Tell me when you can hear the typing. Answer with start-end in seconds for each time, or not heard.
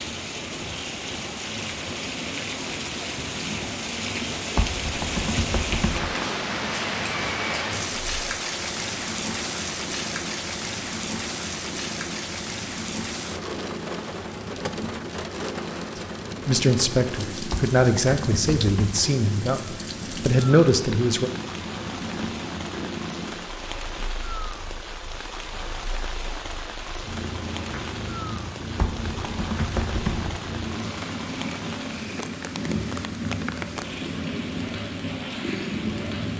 4.5-6.2, 17.5-19.1, 28.8-30.4.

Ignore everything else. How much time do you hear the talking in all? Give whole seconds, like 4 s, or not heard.
5 s.